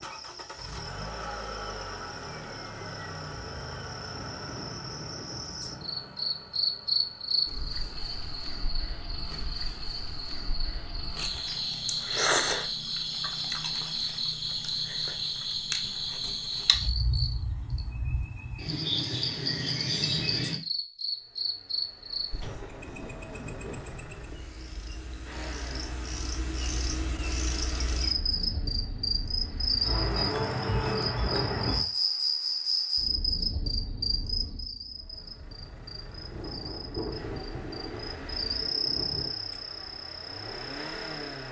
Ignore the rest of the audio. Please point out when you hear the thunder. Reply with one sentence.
You can hear the thunder from 4.0 to 6.1 s, from 22.4 to 23.9 s and from 36.2 to 39.3 s.